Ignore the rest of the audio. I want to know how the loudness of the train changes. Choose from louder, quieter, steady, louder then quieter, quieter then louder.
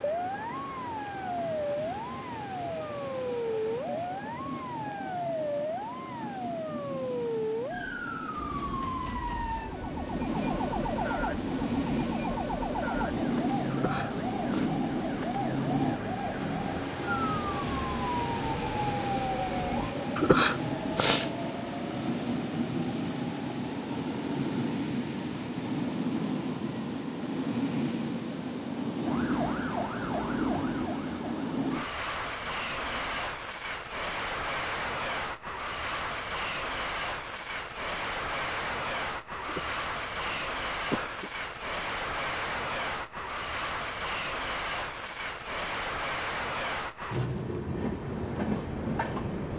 louder.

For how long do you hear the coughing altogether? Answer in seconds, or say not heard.
4 s.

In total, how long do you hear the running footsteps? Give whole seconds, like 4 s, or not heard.
not heard.